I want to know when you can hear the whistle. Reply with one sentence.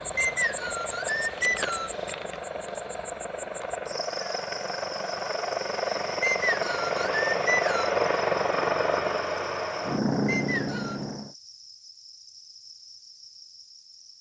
The whistle can be heard from 0.1 to 1.9 s, from 6.2 to 7.9 s and from 10.2 to 11.0 s.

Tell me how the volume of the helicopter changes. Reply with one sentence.
The volume of the helicopter goes up.